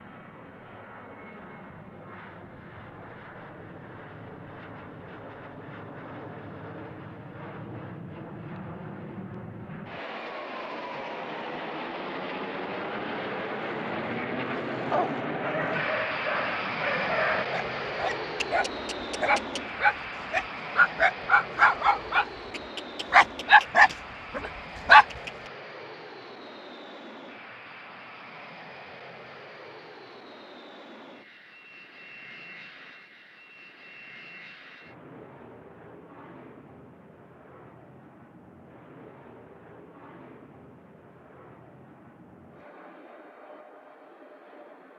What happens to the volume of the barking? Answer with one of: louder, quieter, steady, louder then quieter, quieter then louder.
louder.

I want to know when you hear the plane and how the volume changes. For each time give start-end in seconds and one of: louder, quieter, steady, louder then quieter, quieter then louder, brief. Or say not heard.
0.0-44.9 louder then quieter.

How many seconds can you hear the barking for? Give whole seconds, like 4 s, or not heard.
11 s.